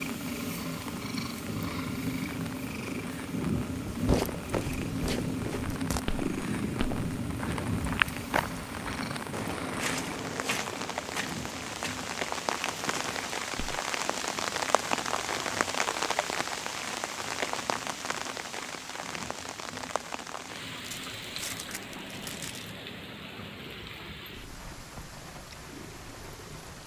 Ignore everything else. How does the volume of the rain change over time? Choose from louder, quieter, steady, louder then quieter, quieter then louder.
louder then quieter.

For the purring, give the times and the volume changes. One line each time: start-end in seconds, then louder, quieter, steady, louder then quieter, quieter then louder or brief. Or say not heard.
0.0-26.8 quieter.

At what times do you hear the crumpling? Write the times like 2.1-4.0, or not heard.
20.8-22.8.